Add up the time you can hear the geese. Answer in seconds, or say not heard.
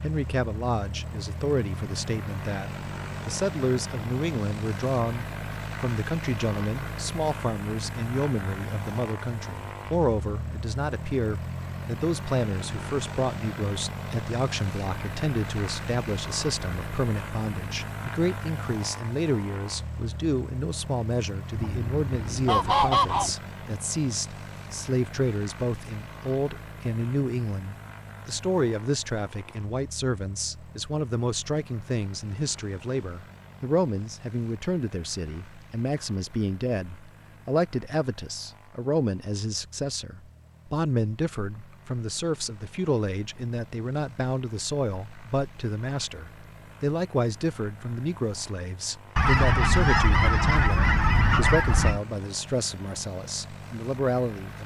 5 s.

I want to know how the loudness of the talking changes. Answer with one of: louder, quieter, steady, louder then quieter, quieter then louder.
steady.